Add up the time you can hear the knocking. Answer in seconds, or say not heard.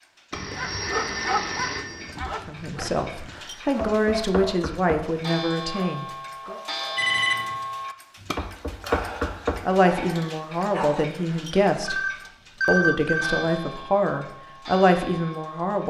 3 s.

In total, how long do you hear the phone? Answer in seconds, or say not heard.
4 s.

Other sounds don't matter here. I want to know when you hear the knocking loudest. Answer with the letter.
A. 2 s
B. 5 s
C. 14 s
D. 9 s
D.